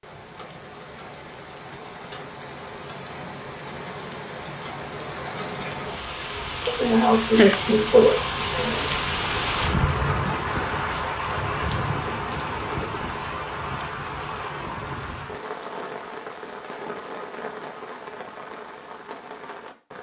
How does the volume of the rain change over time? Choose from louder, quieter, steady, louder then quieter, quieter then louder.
louder then quieter.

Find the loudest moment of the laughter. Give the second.
8 s.